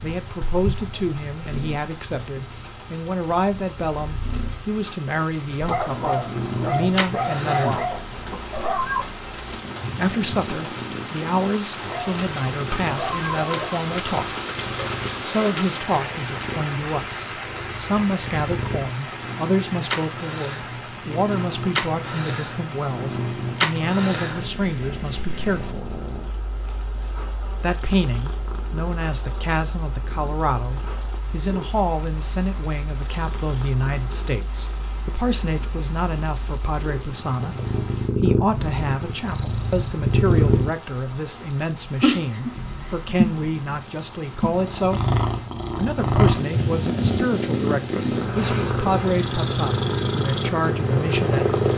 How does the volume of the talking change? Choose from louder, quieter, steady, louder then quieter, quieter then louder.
steady.